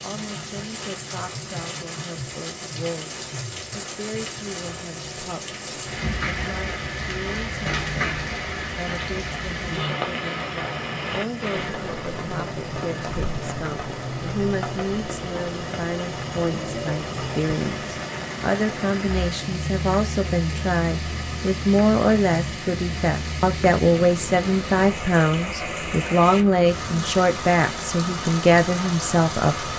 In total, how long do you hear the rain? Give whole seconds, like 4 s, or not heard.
30 s.